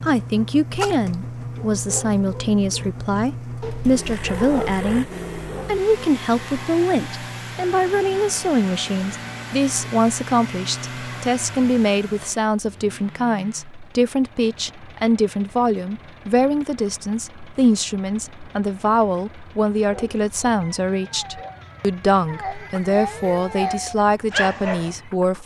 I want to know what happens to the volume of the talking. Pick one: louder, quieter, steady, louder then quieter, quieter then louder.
steady.